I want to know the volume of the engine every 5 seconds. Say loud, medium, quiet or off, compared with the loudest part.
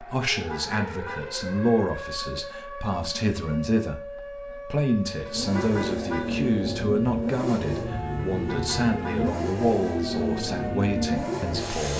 off, loud, loud.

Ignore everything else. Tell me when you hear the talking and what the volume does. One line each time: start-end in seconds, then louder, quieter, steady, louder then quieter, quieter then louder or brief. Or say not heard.
0.0-11.9 steady.